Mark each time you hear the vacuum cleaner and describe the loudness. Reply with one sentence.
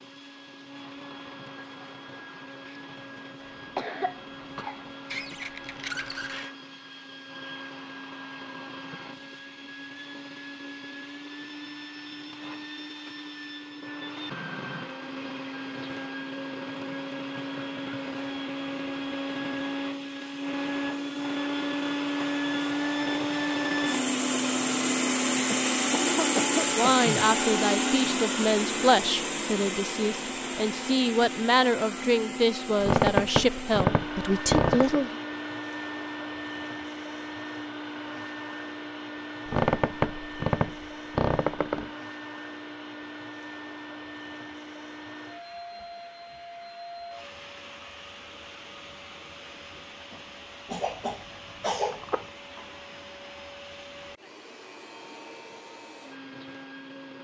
You can hear the vacuum cleaner from 0.0 to 57.1 s, getting louder then quieter.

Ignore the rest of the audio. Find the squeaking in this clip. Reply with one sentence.
The squeaking can be heard from 5.0 to 6.5 s, from 32.8 to 35.1 s and from 39.5 to 41.9 s.